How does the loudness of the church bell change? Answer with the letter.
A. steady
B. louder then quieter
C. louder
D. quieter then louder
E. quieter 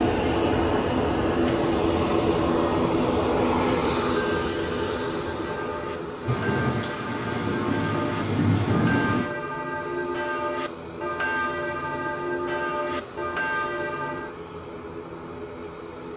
C.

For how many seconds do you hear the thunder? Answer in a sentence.
The thunder can be heard for 3 seconds in total.